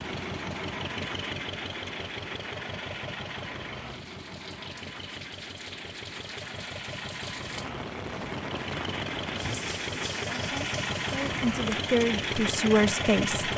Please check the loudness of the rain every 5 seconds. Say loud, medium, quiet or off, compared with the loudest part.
medium, loud, loud.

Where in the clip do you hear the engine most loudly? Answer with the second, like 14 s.
13 s.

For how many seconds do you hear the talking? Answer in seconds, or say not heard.
3 s.